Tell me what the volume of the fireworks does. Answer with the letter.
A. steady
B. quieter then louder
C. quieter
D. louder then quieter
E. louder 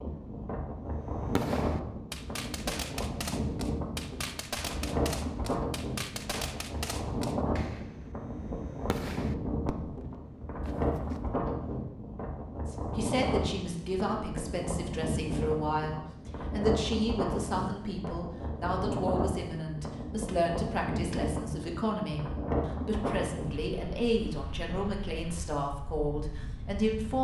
B.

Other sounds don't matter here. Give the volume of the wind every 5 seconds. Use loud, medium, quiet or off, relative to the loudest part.
loud, loud, loud, loud, loud, medium.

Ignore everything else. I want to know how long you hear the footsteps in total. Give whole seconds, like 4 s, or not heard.
not heard.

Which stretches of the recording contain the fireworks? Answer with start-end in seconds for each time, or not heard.
0.8-11.2.